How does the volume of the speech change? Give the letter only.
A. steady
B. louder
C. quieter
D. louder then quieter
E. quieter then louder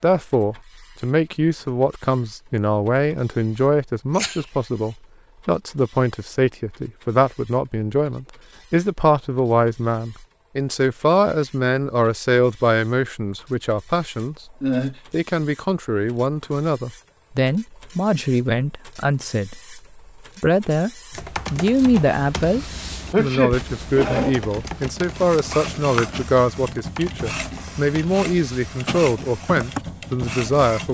A.